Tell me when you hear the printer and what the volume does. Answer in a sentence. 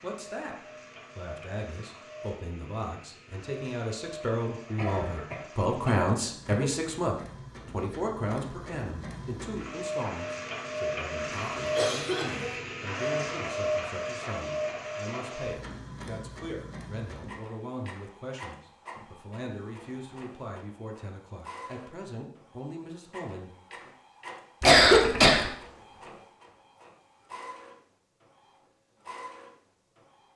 The printer can be heard from 0.0 to 30.3 s, getting louder then quieter.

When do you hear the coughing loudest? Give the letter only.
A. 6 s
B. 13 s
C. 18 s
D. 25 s
D.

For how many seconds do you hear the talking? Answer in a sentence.
You can hear the talking for 24 seconds altogether.